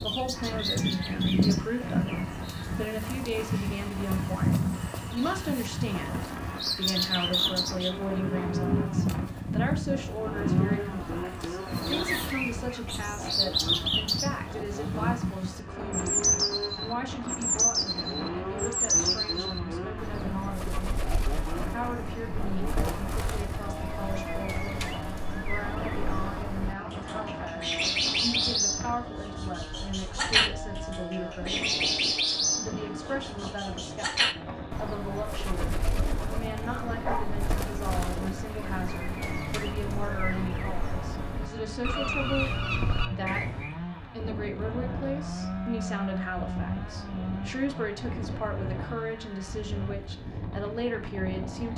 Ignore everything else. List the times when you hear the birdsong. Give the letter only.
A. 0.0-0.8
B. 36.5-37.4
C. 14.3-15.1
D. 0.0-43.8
D.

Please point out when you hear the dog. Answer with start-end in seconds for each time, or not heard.
36.5-37.4.